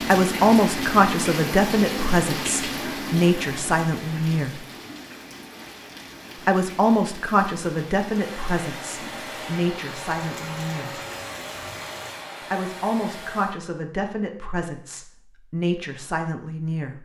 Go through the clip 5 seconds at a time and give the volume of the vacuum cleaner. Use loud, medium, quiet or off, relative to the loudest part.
off, loud, loud, off.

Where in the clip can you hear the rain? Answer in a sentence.
You can hear the rain from 0.0 to 12.2 s.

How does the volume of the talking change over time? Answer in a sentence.
The loudness of the talking goes down.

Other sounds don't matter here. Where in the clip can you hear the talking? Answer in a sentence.
The talking can be heard from 0.0 to 4.7 s, from 6.5 to 11.0 s and from 12.5 to 17.0 s.